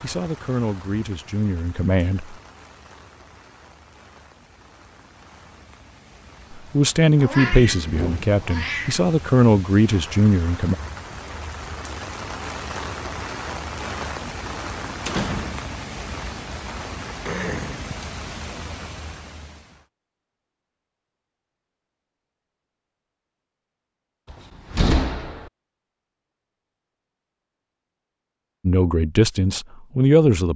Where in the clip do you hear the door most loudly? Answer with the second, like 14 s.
25 s.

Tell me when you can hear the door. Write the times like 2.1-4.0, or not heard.
7.6-8.4, 15.1-15.8, 24.3-25.5.